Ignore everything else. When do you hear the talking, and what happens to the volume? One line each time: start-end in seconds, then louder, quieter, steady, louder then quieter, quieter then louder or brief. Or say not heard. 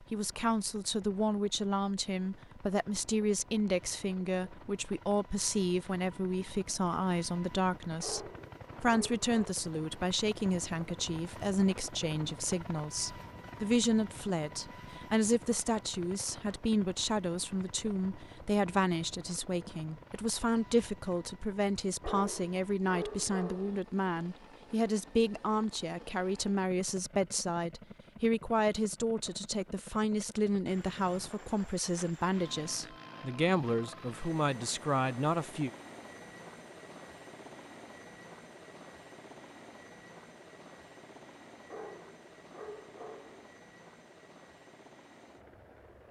0.0-35.7 steady.